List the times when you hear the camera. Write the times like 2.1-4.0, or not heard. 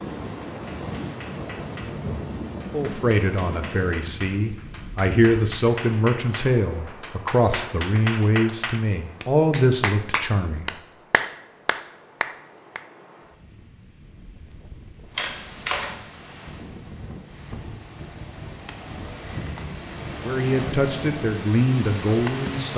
15.2-15.9.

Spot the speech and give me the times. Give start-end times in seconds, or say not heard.
2.7-10.7, 20.2-22.7.